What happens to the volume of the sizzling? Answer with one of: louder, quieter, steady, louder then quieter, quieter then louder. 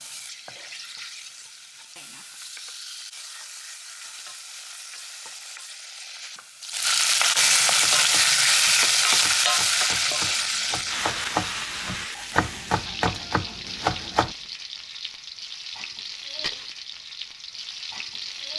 louder then quieter.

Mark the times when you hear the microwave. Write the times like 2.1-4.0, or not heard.
not heard.